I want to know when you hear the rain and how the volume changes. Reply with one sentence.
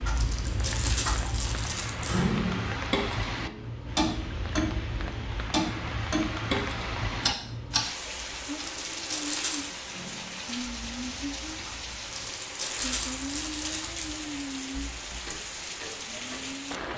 You can hear the rain from 0.0 to 16.9 s, at a steady volume.